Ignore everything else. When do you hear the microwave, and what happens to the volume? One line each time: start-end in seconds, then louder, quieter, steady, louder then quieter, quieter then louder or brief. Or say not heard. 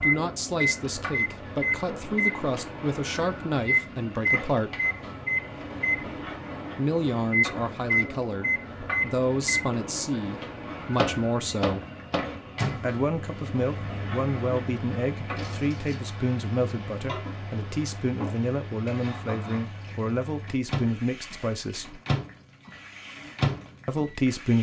0.0-24.2 quieter then louder.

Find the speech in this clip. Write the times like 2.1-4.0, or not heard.
0.0-4.8, 6.8-11.8, 12.8-22.0, 23.9-24.5.